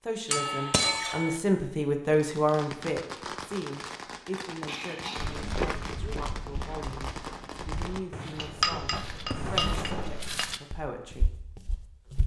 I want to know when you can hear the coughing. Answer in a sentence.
The coughing can be heard from 4.7 to 5.5 s.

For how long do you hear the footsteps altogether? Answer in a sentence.
The footsteps can be heard for 7 seconds in total.